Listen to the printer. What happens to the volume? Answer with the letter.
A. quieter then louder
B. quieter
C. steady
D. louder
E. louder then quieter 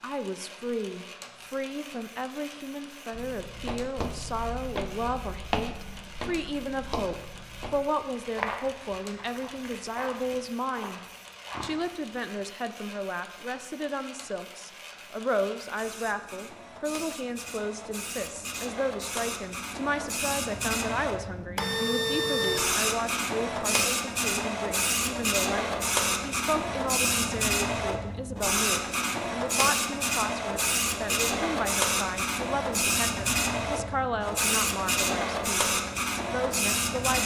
D.